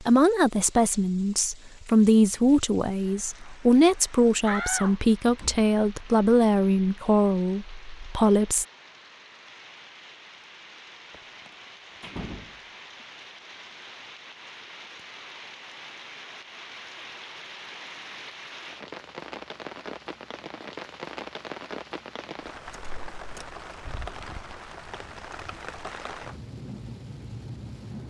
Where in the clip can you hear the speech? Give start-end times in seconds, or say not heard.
0.0-8.7.